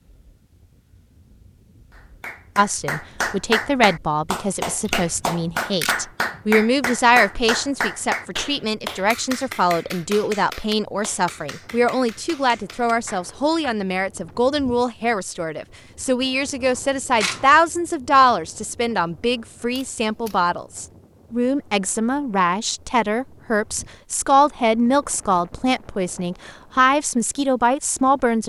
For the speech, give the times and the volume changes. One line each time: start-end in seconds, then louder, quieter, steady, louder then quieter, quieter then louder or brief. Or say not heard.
2.5-28.4 steady.